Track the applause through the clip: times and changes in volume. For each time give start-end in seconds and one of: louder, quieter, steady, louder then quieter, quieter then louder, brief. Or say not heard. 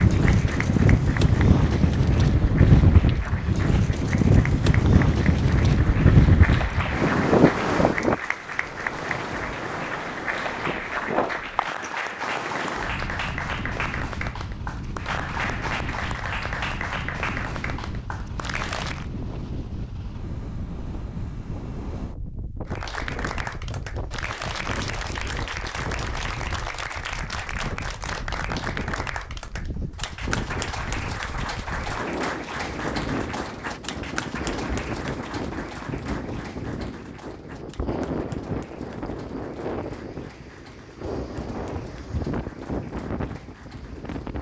0.0-19.1 louder
22.6-44.3 quieter.